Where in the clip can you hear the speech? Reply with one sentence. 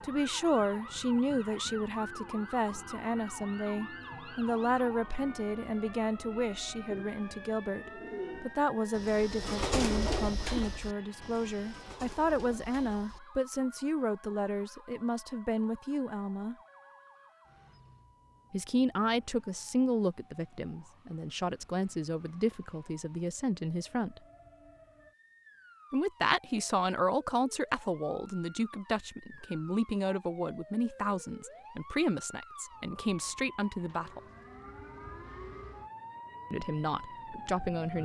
You can hear the speech from 0.0 to 16.6 s, from 18.5 to 24.2 s, from 25.9 to 34.2 s and from 36.5 to 38.0 s.